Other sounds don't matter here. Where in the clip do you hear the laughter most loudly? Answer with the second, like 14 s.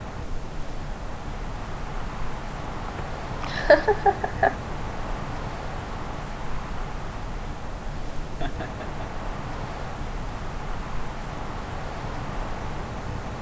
4 s.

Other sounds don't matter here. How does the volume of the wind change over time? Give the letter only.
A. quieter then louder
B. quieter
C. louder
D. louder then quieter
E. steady
E.